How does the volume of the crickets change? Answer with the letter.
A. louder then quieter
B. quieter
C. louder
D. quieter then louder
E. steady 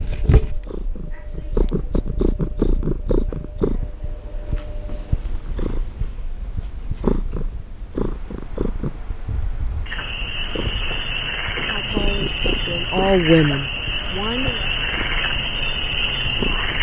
C.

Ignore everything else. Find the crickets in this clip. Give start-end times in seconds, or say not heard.
7.8-16.7.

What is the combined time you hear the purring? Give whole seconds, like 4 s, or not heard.
17 s.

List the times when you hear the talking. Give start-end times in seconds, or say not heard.
11.6-14.7.